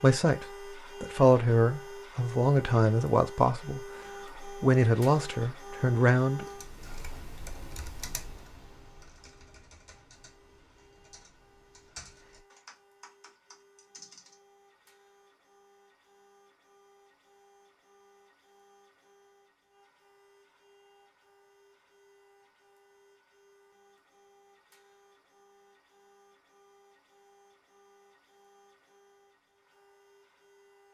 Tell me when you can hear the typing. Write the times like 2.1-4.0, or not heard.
6.4-14.3.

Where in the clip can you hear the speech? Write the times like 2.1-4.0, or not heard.
0.0-6.5.